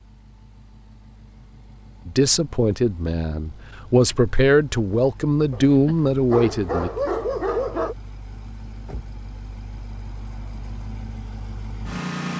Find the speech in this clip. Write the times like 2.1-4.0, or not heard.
2.0-6.9.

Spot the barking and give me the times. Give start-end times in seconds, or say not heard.
5.5-8.0.